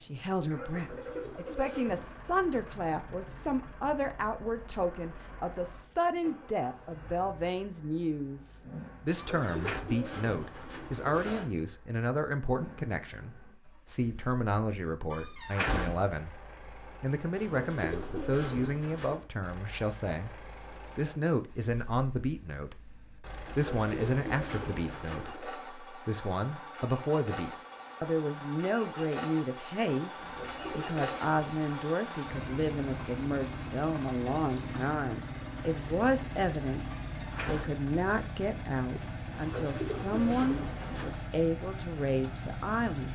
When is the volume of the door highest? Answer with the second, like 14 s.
16 s.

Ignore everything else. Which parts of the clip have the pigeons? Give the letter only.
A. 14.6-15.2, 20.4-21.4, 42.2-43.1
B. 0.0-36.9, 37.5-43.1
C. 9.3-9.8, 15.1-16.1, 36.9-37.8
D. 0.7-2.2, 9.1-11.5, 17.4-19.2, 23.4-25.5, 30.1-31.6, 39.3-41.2
D.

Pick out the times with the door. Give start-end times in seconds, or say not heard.
9.3-9.8, 15.1-16.1, 36.9-37.8.